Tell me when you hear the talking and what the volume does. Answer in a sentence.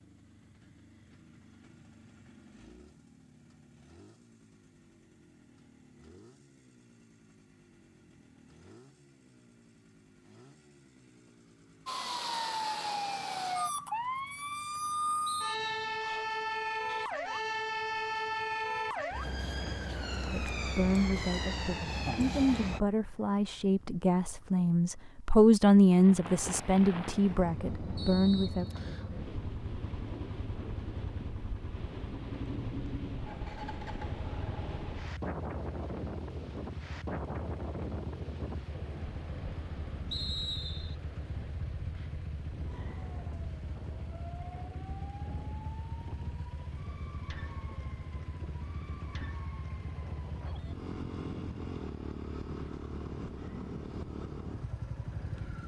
You can hear the talking from 20.3 to 28.6 s, getting louder then quieter.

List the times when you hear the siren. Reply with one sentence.
You can hear the siren from 11.8 to 22.8 s and from 42.7 to 50.8 s.